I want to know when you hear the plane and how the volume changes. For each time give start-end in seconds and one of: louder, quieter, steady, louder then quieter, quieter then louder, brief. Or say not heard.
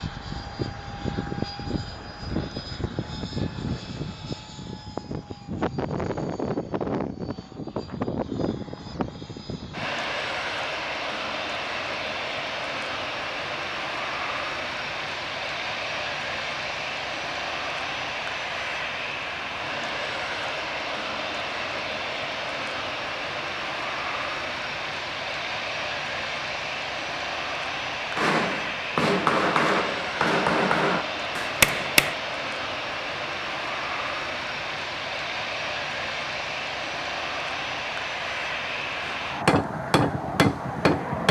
0.0-41.2 steady.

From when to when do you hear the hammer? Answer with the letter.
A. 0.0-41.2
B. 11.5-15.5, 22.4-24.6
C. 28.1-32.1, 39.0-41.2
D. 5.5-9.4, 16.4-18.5
C.